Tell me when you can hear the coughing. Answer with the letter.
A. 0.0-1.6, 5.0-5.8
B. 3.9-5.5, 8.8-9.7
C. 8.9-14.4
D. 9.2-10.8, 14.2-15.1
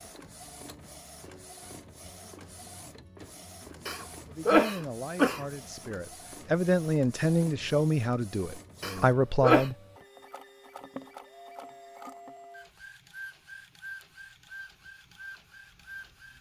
B.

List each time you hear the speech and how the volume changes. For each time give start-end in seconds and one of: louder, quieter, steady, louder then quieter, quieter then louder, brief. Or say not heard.
4.2-9.8 louder.